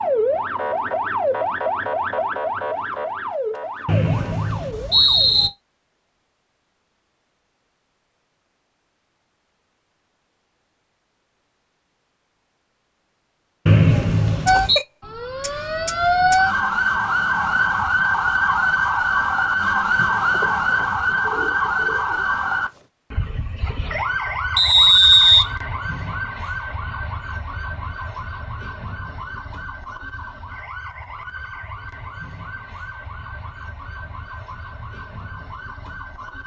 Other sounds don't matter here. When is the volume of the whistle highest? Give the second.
25 s.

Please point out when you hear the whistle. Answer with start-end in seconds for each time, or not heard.
3.9-5.5, 13.7-14.8, 24.6-25.4.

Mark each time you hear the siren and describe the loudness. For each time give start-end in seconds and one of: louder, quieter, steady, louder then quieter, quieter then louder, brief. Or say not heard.
0.0-5.5 quieter
14.4-36.4 quieter.